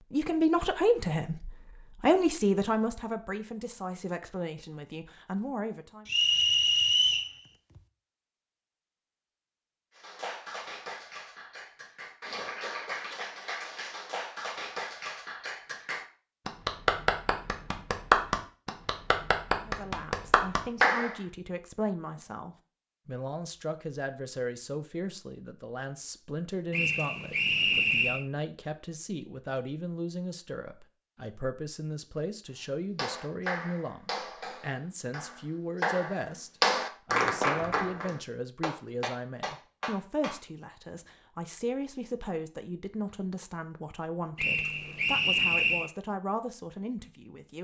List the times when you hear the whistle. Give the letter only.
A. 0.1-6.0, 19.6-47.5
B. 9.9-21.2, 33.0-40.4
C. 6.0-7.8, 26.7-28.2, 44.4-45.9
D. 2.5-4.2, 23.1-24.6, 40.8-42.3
C.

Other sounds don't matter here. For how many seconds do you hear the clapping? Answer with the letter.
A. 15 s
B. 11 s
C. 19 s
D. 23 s
C.